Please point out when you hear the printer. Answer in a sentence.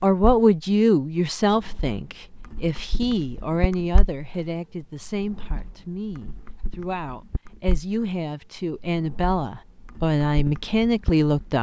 The printer can't be heard in this clip.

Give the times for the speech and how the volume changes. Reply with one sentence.
You can hear the speech from 0.0 to 11.5 s, getting quieter then louder.